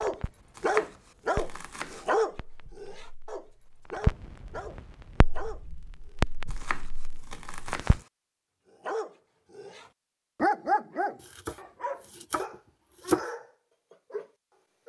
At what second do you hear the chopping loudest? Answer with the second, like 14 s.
13 s.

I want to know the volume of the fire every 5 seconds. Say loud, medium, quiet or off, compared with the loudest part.
loud, loud, off.